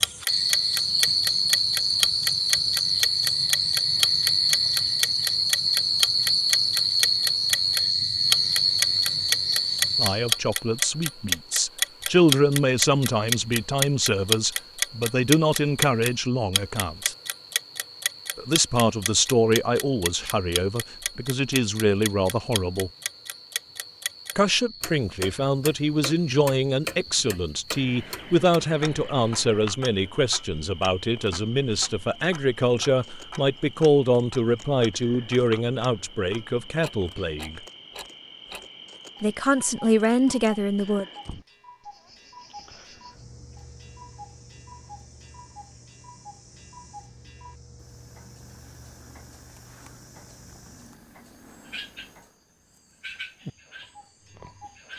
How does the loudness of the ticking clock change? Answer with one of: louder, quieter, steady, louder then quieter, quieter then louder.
quieter.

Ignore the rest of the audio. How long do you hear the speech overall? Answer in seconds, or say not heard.
27 s.